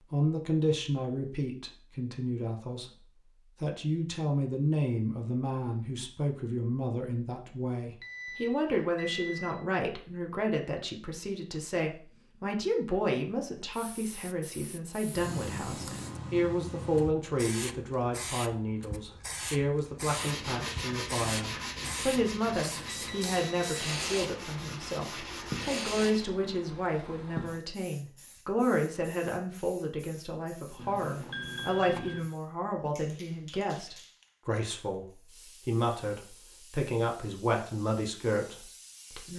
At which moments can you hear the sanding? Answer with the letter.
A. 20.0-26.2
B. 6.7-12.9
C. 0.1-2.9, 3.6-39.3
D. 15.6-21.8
A.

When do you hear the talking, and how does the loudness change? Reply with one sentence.
You can hear the talking briefly from 0.1 to 2.9 s; and from 3.6 to 39.3 s, at a steady volume.